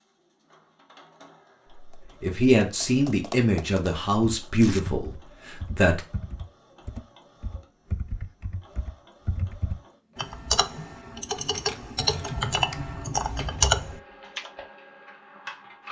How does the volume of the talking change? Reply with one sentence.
The volume of the talking goes down.